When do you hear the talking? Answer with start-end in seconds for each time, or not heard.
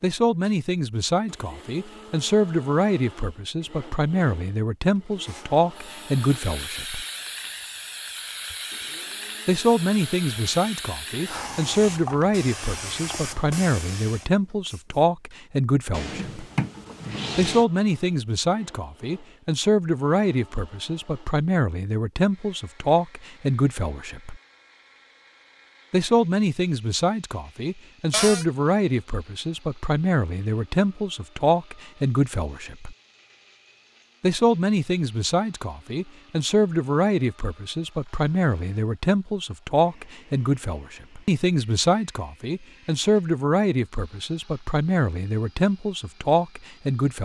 0.0-7.0, 9.4-16.4, 17.4-24.4, 25.9-33.0, 34.2-47.2.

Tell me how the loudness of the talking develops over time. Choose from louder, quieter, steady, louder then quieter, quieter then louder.
steady.